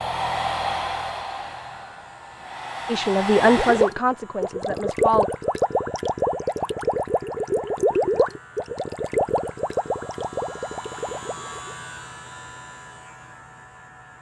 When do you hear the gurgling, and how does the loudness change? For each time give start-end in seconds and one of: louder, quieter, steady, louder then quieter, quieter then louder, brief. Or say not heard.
3.5-11.8 quieter.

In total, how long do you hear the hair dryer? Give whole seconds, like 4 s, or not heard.
4 s.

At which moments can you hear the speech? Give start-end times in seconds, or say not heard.
2.9-5.3.